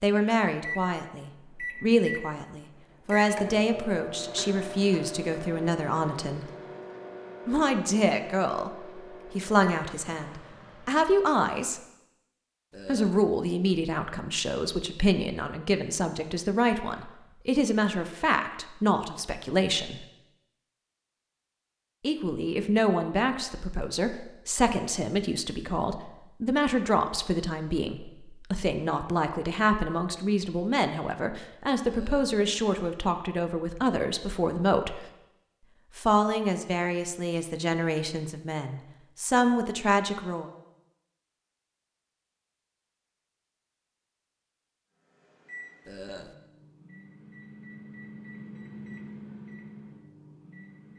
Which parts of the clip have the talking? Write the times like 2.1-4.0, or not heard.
0.0-6.5, 7.5-11.8, 12.8-20.1, 22.0-35.0, 36.0-40.5.